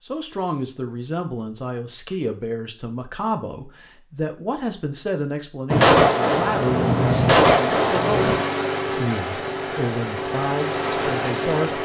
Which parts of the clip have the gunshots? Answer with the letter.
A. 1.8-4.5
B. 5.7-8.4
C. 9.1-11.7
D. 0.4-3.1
B.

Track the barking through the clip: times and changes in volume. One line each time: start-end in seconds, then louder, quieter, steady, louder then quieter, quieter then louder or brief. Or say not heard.
not heard.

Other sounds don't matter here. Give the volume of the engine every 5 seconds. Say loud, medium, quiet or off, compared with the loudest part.
off, loud, loud.